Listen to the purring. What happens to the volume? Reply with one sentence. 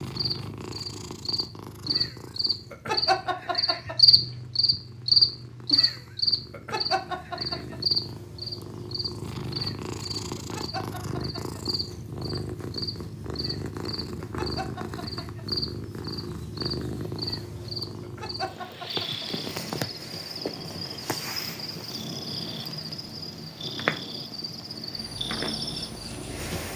The volume of the purring goes up.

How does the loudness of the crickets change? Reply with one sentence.
The volume of the crickets goes down.